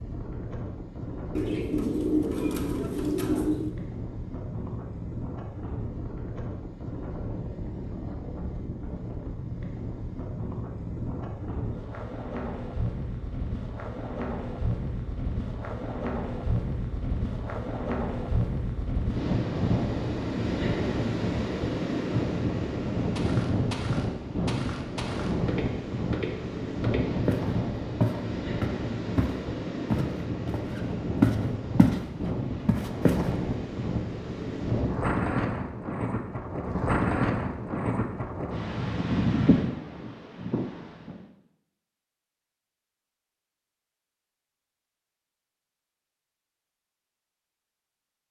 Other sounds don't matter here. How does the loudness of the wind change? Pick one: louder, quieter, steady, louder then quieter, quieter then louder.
louder.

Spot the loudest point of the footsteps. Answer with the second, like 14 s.
31 s.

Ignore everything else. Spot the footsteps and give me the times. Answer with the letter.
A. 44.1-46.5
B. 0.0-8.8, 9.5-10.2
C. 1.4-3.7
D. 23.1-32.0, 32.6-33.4
D.